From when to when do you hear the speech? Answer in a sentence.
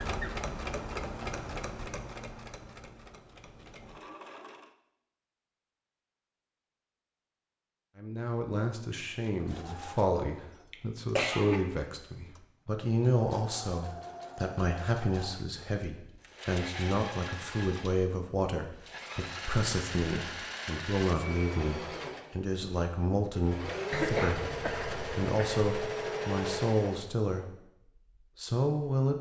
You can hear the speech from 8.0 to 27.6 s and from 28.4 to 29.1 s.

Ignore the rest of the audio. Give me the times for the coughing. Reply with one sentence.
The coughing can be heard from 10.7 to 11.6 s and from 23.9 to 25.6 s.